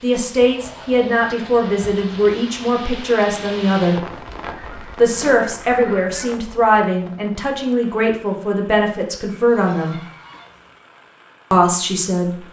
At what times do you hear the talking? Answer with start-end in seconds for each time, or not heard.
0.0-4.0, 5.0-10.0, 11.5-12.4.